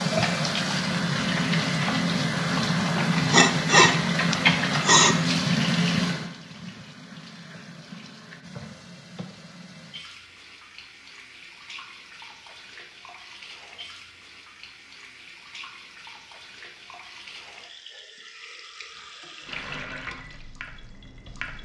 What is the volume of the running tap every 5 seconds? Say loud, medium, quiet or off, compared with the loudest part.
loud, medium, quiet, quiet, quiet.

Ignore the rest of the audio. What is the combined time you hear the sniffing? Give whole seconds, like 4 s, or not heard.
2 s.